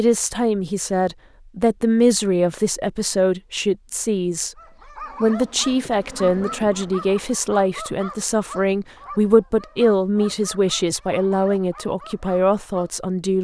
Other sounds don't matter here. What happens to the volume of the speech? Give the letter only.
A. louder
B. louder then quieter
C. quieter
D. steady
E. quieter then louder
D.